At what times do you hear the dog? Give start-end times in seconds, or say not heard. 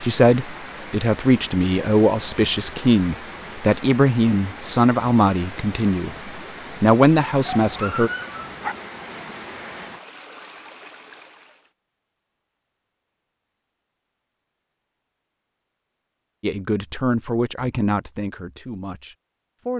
7.4-8.8.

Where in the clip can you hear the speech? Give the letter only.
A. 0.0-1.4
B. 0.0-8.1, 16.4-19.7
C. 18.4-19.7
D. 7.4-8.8
B.